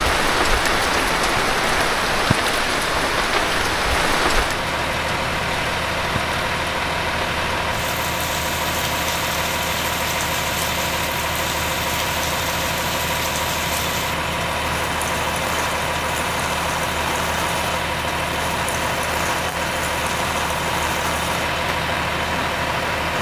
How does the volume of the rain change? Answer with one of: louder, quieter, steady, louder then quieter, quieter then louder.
quieter.